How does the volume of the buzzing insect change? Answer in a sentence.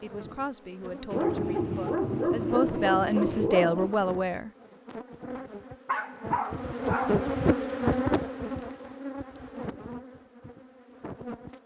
The loudness of the buzzing insect goes up, then down.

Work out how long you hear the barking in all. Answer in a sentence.
The barking can be heard for 4 seconds in total.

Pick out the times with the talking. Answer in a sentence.
You can hear the talking from 0.0 to 4.5 s.